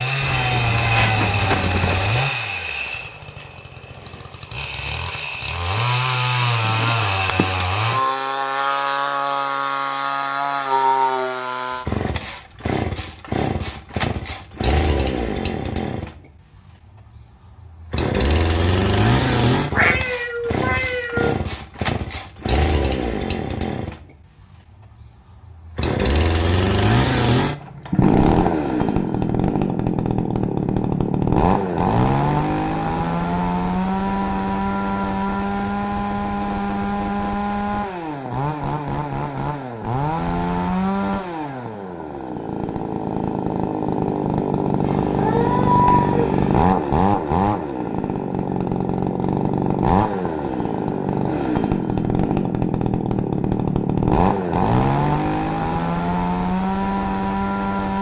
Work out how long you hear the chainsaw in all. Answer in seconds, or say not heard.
56 s.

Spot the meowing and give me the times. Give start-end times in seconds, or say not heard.
0.2-2.2, 19.7-21.4, 44.8-46.6.